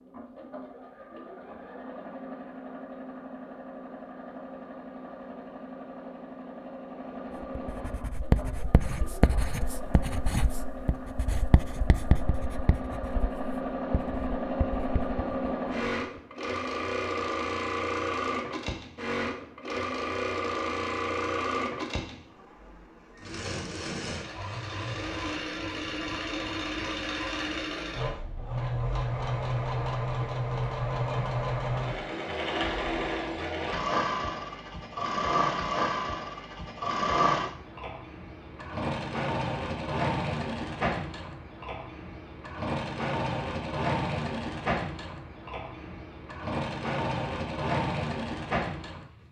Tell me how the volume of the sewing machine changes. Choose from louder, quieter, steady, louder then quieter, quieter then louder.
louder.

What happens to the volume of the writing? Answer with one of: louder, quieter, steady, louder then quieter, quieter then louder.
quieter.